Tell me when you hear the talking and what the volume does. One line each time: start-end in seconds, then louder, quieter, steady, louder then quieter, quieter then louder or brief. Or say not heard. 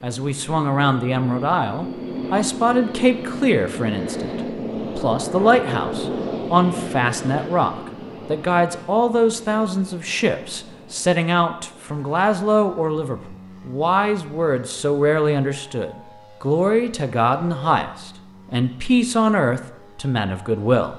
0.0-20.9 steady.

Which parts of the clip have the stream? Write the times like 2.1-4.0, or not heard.
not heard.